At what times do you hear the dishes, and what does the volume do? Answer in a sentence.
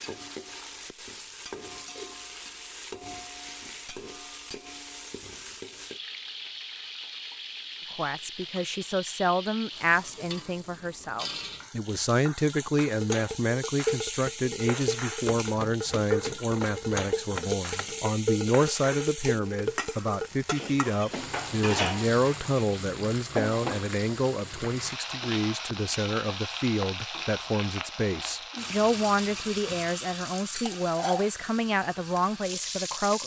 You can hear the dishes from 12.8 to 22.4 s, at a steady volume.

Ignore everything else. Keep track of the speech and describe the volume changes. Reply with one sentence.
The volume of the speech stays about the same.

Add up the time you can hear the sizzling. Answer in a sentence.
You can hear the sizzling for 33 seconds altogether.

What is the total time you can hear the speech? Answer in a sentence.
You can hear the speech for 25 seconds altogether.